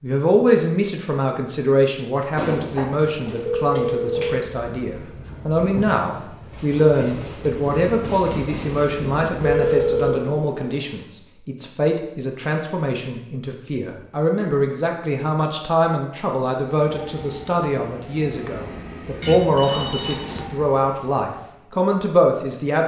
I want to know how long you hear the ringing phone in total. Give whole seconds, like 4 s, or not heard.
4 s.